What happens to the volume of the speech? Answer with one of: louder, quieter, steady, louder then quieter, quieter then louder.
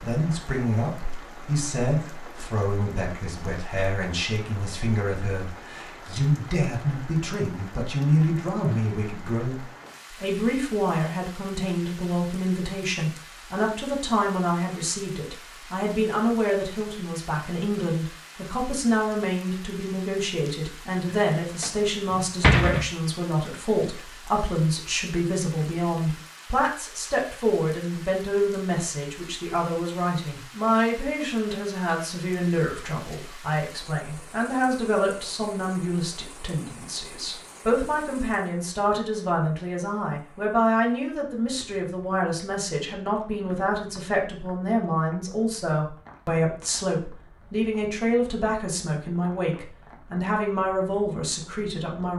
steady.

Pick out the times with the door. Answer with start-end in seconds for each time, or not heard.
21.1-22.9.